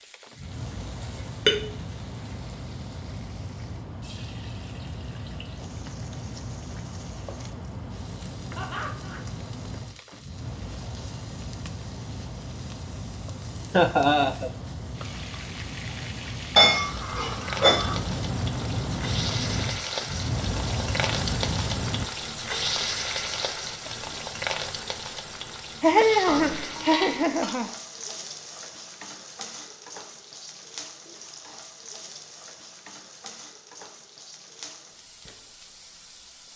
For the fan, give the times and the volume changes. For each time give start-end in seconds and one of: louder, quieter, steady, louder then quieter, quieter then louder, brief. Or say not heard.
0.0-22.1 louder.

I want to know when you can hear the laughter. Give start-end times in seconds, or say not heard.
8.6-9.2, 13.7-14.5, 25.8-27.7.